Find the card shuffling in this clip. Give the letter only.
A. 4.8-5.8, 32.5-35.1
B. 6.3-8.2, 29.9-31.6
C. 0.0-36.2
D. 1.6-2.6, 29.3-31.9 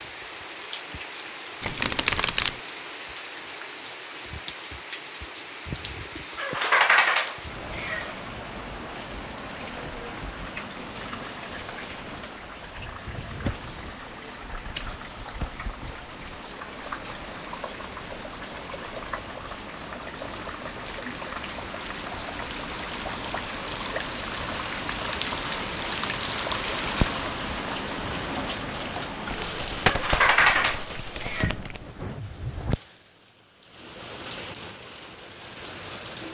D.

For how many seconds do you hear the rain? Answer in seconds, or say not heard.
36 s.